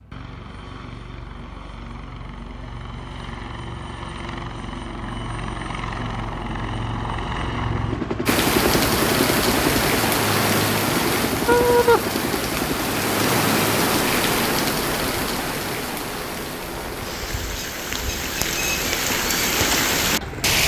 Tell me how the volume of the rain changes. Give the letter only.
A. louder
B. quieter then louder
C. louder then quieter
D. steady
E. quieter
B.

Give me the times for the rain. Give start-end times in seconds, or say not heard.
8.2-20.6.